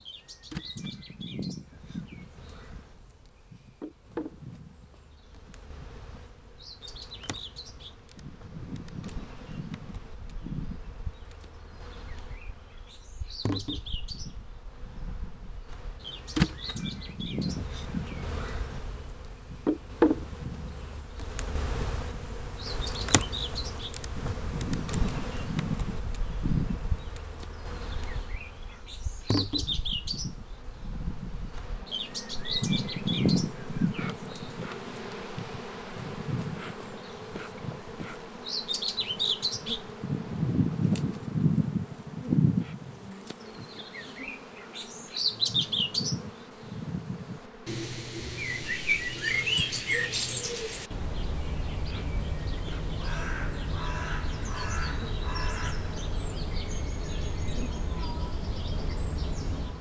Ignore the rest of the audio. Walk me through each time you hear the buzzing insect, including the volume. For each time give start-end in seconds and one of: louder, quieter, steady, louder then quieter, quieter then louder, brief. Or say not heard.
0.0-59.7 louder then quieter.